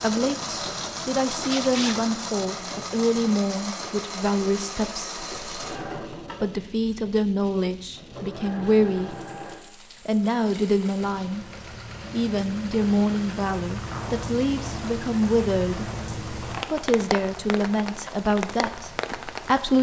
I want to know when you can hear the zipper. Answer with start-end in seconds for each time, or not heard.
1.3-1.9, 13.7-14.3.